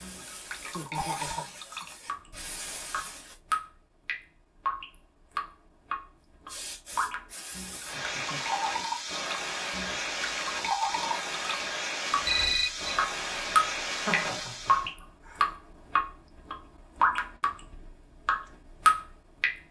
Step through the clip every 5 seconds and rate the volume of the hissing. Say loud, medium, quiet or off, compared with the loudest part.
medium, loud, loud, off.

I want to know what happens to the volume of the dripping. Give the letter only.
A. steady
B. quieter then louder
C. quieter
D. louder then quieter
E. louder
E.